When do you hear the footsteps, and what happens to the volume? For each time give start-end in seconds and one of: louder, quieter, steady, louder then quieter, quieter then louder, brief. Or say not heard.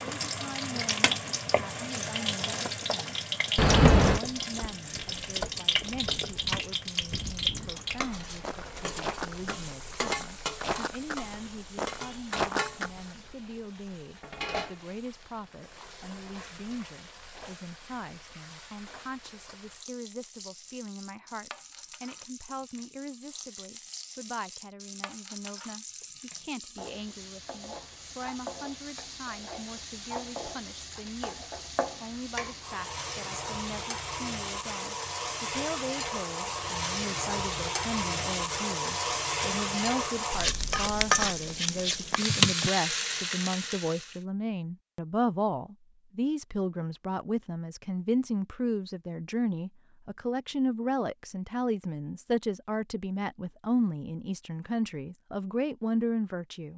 4.4-13.0 louder.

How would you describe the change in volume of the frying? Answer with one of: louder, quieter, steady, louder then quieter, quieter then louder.
quieter then louder.